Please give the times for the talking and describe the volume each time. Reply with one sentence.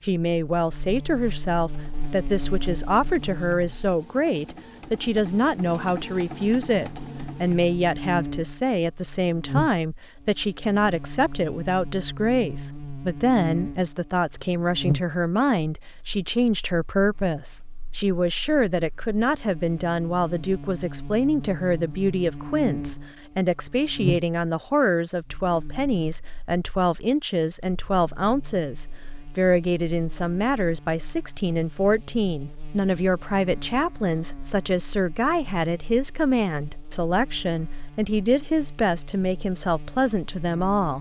You can hear the talking from 0.0 to 40.9 s, at a steady volume.